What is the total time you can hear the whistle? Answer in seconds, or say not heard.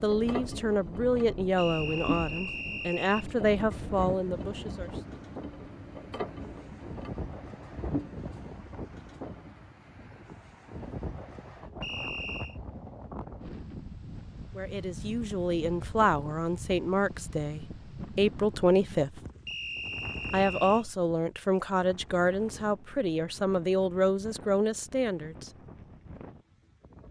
4 s.